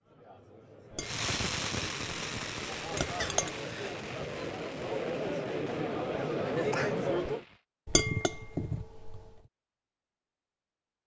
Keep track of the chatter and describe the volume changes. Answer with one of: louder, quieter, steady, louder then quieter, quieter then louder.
louder.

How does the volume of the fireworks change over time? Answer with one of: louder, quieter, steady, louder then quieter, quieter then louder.
quieter.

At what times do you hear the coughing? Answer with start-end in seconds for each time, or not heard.
3.2-4.0, 6.5-7.0.